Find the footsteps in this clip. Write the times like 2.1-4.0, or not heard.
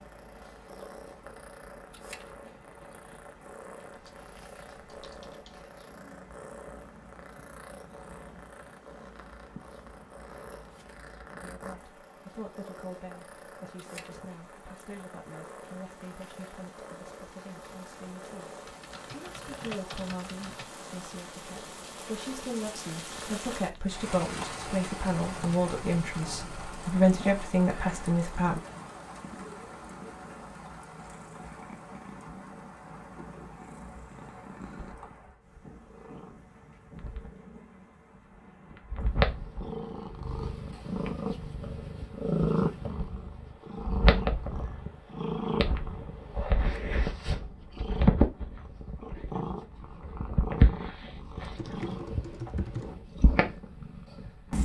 not heard.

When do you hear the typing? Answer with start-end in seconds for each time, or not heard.
3.9-5.7, 18.6-20.7, 51.5-53.0.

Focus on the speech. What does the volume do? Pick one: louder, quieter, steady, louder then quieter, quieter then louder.
louder.